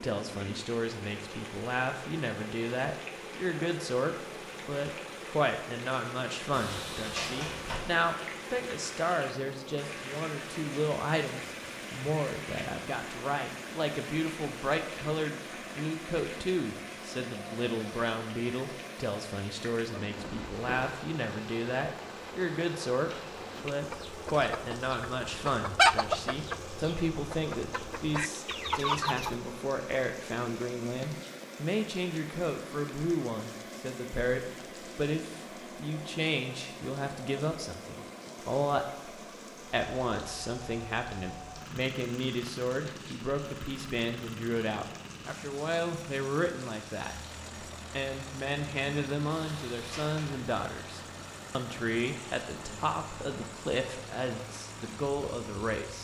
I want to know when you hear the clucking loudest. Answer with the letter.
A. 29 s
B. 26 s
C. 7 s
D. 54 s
B.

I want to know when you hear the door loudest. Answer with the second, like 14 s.
7 s.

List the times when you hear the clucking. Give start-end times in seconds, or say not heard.
23.1-29.4.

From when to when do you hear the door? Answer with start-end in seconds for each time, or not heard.
6.5-7.8, 20.1-20.9, 49.3-50.5.